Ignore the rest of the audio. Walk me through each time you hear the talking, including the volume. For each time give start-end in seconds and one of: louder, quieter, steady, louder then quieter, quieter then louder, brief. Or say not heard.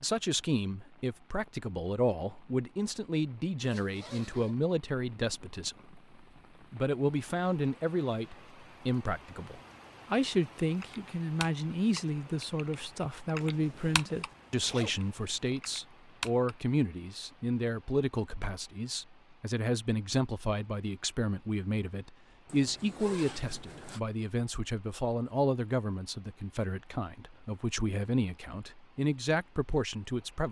0.0-6.0 steady
6.7-30.4 steady.